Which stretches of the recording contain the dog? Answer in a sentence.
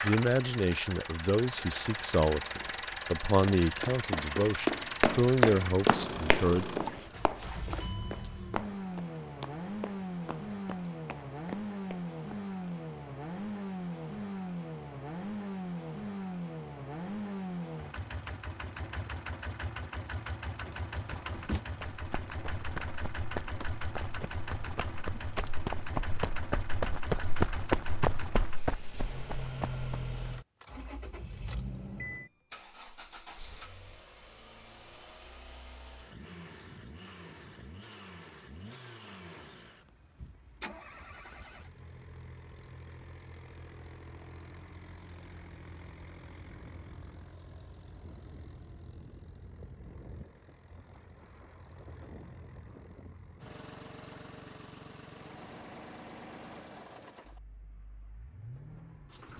You can't hear the dog here.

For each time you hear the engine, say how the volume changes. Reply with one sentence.
You can hear the engine from 0.0 to 59.3 s, getting quieter.